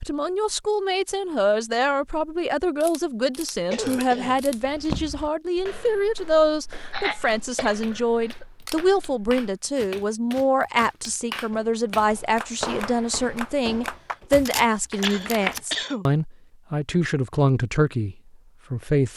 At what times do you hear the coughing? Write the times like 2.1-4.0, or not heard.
3.7-4.4, 6.8-8.4, 14.9-16.1.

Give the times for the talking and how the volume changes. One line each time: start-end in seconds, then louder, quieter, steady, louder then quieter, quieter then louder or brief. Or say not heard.
0.0-19.1 steady.